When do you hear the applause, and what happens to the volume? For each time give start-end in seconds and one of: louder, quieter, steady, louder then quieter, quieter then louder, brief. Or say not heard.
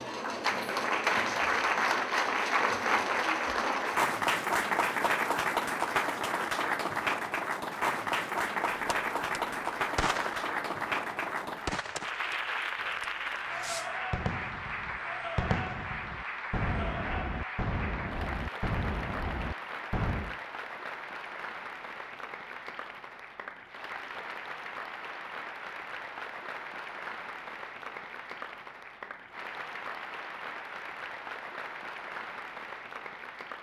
0.0-33.5 quieter.